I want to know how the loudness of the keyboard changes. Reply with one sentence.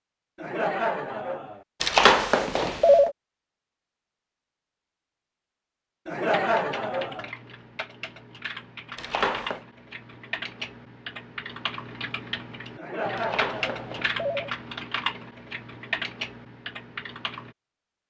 The volume of the keyboard goes up.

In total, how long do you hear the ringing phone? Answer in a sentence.
You can hear the ringing phone for 3 seconds altogether.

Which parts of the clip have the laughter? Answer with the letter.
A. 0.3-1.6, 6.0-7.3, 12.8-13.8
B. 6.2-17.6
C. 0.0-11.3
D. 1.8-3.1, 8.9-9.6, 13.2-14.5
A.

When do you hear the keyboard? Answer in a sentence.
You can hear the keyboard from 6.2 to 17.6 s.